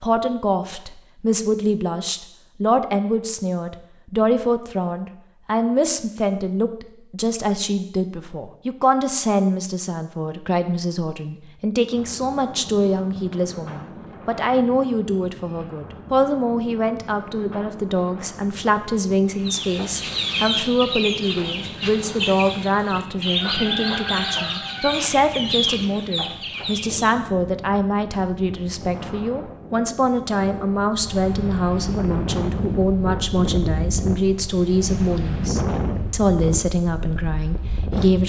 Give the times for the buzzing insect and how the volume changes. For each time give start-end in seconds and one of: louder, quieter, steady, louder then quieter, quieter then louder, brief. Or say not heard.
not heard.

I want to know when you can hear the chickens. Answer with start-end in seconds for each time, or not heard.
19.4-27.1.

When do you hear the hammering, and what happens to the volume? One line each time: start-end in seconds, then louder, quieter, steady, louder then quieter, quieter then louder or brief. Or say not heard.
not heard.